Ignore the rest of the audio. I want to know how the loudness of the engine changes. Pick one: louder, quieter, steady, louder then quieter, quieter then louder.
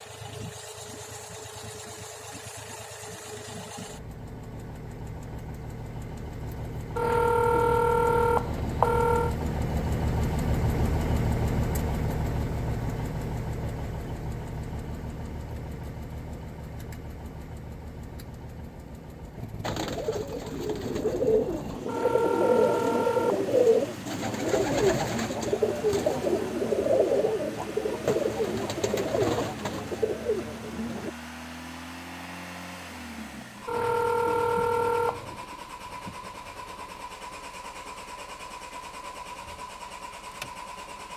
louder then quieter.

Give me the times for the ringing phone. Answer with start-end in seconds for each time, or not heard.
7.0-9.3, 21.9-23.4, 33.6-35.4.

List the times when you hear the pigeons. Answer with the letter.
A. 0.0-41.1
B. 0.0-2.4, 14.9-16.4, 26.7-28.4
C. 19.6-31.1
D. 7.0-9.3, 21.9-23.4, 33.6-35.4
C.